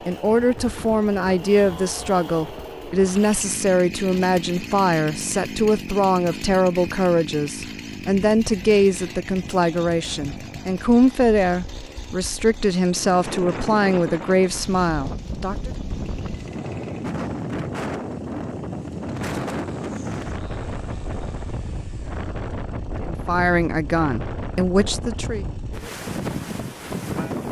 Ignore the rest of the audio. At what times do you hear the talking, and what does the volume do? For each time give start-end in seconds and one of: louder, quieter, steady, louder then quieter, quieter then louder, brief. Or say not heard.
0.1-15.7 steady
23.0-25.4 brief.